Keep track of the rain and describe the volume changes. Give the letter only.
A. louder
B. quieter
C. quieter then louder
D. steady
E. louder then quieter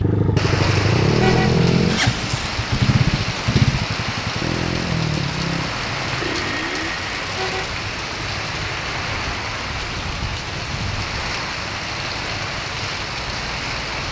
D.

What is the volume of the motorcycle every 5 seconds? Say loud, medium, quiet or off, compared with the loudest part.
loud, medium, quiet.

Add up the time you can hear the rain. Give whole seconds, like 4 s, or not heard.
14 s.